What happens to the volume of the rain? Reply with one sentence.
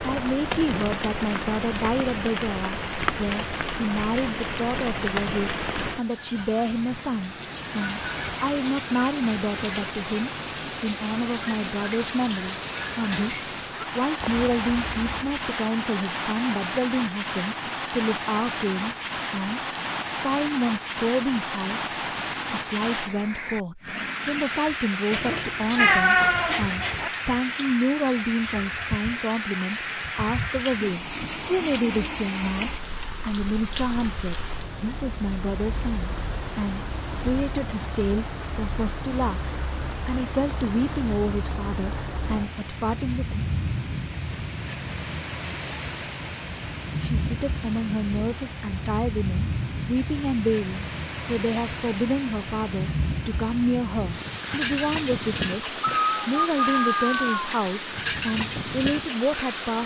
The volume of the rain stays about the same.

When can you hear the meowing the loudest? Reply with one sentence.
The volume of the meowing peaks at 26 seconds.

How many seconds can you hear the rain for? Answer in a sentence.
You can hear the rain for 60 seconds altogether.